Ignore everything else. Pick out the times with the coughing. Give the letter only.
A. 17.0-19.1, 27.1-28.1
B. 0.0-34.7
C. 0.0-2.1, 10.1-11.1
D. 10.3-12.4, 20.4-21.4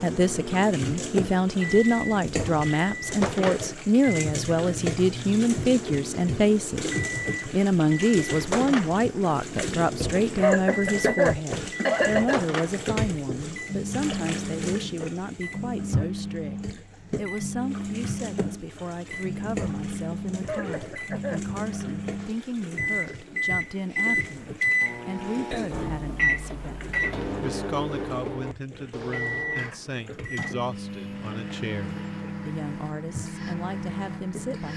D.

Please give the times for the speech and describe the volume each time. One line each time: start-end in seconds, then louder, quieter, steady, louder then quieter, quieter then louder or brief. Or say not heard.
0.0-34.7 quieter.